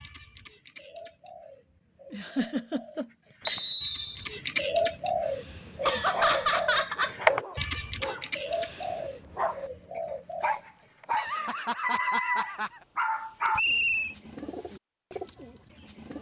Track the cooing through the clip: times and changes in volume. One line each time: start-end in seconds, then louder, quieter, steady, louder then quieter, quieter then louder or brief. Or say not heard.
0.0-11.1 louder then quieter
13.4-16.1 brief.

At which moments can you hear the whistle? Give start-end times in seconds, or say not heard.
3.5-4.3, 13.6-14.2.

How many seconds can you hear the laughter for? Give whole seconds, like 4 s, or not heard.
5 s.